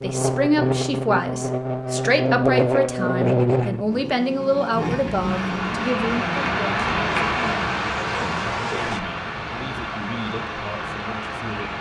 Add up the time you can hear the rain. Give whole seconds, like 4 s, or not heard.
7 s.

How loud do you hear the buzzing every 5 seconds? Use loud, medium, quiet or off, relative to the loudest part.
loud, medium, off.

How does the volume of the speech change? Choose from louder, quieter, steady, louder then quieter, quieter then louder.
quieter.